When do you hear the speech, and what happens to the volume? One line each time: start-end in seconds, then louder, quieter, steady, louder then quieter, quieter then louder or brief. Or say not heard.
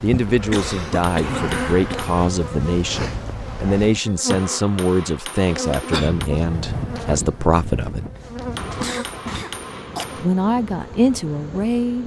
0.0-8.1 steady
10.2-12.0 brief.